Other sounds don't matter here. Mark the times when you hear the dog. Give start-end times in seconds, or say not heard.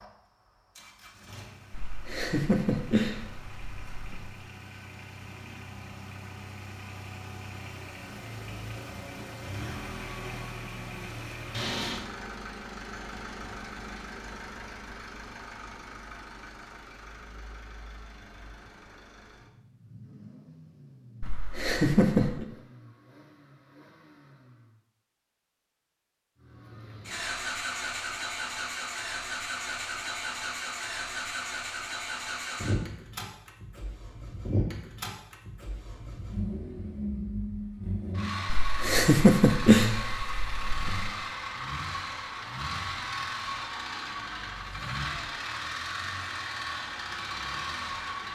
not heard.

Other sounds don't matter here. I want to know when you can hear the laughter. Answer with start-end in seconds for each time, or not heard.
1.7-4.2, 21.2-22.4, 38.5-41.1.